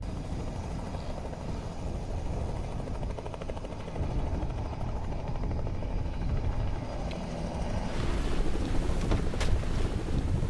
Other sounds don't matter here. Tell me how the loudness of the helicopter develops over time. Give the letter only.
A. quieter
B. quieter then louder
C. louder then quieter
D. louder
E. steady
D.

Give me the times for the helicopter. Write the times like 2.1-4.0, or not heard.
0.0-10.4.